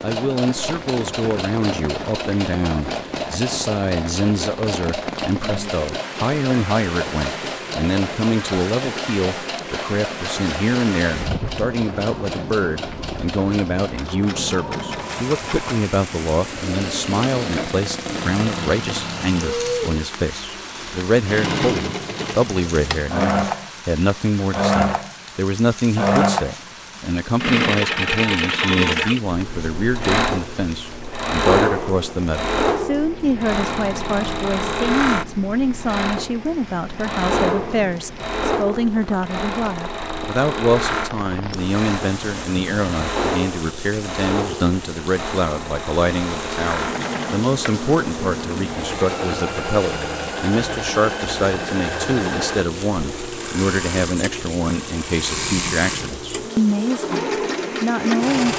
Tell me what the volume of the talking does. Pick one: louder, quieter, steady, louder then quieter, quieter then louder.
steady.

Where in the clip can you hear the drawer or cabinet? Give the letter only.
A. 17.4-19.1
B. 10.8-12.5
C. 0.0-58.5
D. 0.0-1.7
A.